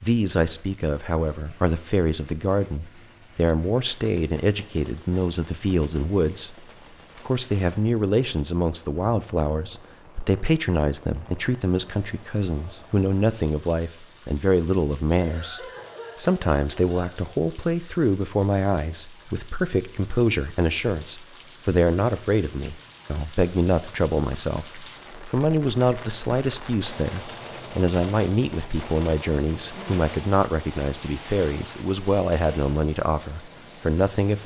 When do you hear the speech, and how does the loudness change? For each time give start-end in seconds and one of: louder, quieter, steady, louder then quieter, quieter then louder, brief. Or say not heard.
0.0-6.7 steady
7.2-34.4 steady.